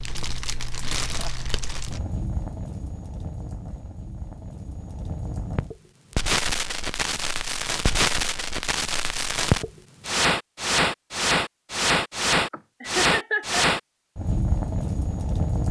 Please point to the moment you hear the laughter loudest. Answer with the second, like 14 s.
13 s.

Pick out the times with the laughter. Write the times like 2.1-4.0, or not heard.
0.8-1.5, 12.5-13.7.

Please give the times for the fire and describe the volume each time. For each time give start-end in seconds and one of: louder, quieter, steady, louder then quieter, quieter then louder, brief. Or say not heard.
0.0-15.6 louder.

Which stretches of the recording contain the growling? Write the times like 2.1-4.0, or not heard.
not heard.